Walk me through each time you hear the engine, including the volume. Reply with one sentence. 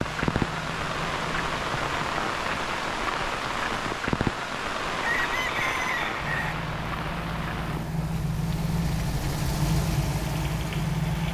You can hear the engine briefly from 0.0 to 2.1 s; and from 6.2 to 11.2 s, getting louder.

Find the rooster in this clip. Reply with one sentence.
The rooster can be heard from 5.0 to 6.5 s.